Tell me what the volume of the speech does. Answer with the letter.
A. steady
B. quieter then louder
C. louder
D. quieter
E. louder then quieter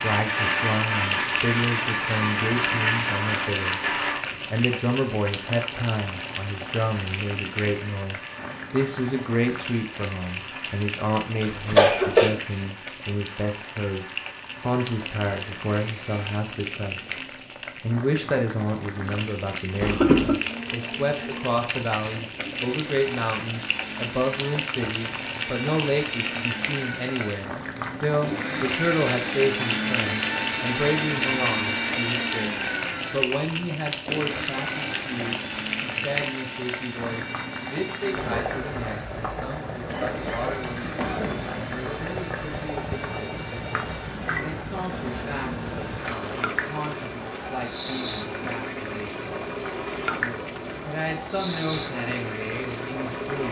D.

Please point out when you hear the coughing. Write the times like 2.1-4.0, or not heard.
11.4-12.4, 19.8-20.4, 39.9-41.6.